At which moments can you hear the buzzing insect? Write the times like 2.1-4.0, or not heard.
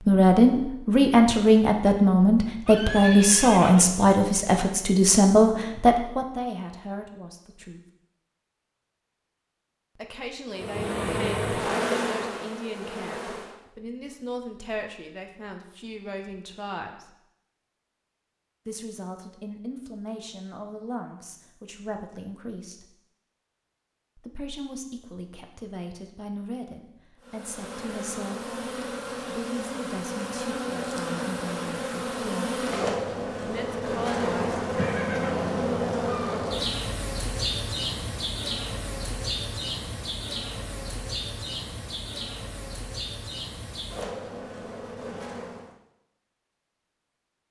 10.5-13.6, 27.2-45.8.